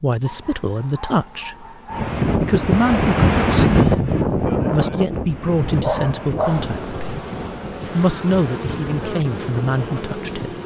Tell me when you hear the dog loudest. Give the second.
6 s.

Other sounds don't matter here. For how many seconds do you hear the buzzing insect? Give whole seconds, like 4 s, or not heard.
4 s.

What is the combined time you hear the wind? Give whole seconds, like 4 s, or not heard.
9 s.